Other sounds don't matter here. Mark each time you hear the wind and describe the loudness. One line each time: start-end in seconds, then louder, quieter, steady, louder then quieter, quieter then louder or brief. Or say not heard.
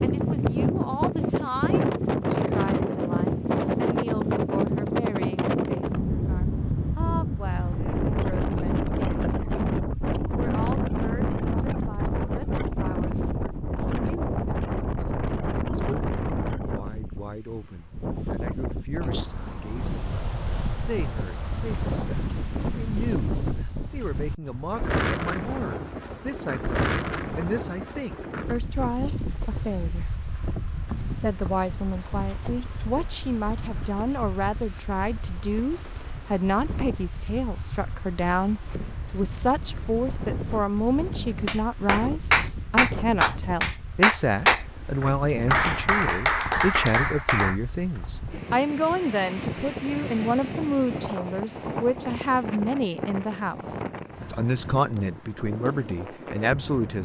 0.0-57.0 quieter.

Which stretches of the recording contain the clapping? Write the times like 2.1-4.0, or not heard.
41.5-47.5.